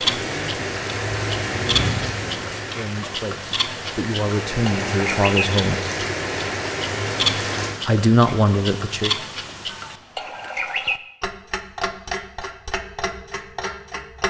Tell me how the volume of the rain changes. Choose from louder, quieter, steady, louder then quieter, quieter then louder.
quieter then louder.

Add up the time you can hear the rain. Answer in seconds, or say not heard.
8 s.